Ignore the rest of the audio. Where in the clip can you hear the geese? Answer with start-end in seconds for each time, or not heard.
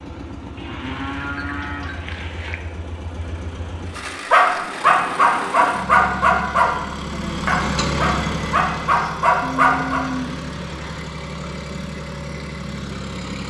not heard.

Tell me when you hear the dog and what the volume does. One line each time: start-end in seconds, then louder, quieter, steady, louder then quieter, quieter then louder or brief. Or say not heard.
4.3-10.1 quieter then louder.